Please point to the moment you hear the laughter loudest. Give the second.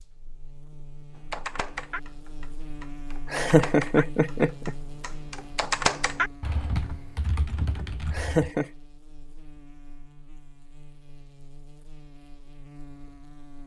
4 s.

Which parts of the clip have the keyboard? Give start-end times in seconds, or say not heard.
1.3-8.5.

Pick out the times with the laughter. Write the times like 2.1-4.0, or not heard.
3.3-4.8, 8.1-8.7.